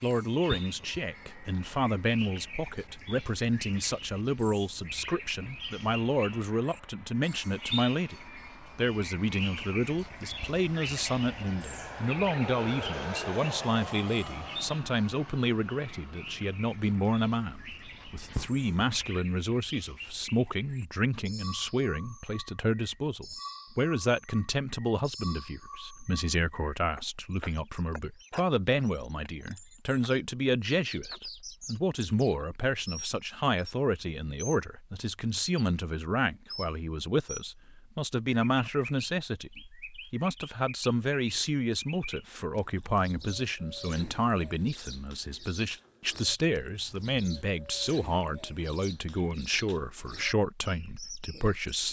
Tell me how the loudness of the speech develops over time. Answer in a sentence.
The loudness of the speech stays about the same.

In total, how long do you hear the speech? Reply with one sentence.
The speech can be heard for 52 seconds in total.